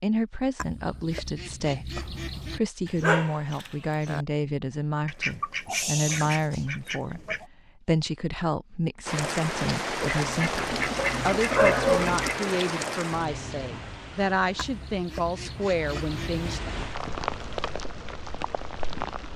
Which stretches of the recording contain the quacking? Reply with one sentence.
You can hear the quacking from 0.6 to 2.6 s, from 5.0 to 7.5 s, from 10.0 to 12.4 s and from 14.6 to 16.6 s.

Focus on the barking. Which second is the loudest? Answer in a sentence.
The loudest moment of the barking is at 12 seconds.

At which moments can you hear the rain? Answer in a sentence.
You can hear the rain from 9.1 to 19.3 s.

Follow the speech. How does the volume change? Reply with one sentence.
The loudness of the speech stays about the same.